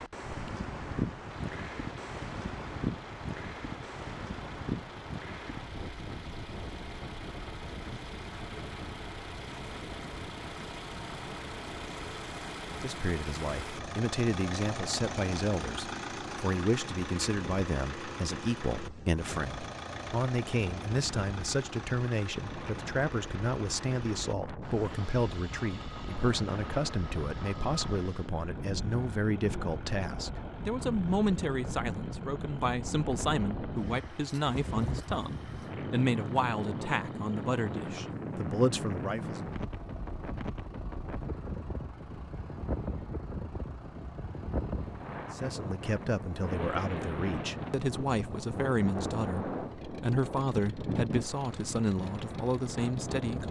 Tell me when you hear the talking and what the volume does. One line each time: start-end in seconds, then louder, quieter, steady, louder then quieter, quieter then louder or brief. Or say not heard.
12.7-39.5 steady
45.3-53.4 steady.